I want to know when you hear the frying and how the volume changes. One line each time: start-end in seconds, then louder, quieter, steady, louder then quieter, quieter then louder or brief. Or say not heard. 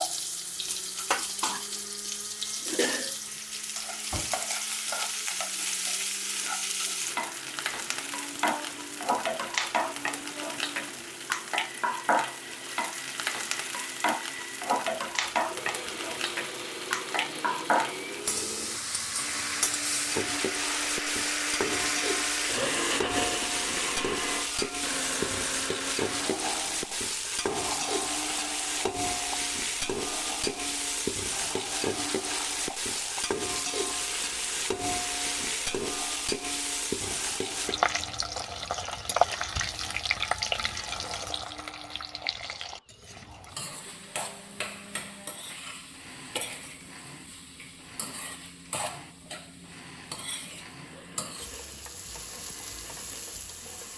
0.0-53.9 quieter.